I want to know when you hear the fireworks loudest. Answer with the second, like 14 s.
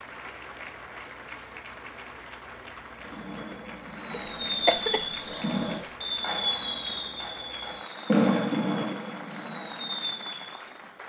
8 s.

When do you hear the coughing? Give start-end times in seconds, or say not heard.
4.1-6.0.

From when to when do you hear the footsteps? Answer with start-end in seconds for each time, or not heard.
not heard.